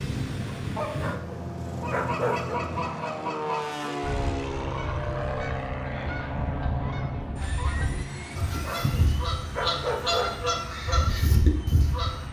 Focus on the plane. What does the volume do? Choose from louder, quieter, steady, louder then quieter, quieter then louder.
quieter.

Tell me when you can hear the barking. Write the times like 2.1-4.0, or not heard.
0.8-2.6, 8.5-10.6.